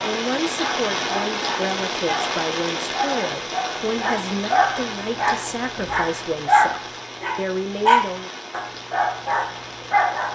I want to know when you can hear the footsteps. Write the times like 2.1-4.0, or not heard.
not heard.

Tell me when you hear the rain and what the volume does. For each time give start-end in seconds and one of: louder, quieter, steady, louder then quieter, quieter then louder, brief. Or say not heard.
0.0-10.3 quieter.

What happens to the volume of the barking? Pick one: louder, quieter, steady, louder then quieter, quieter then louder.
louder then quieter.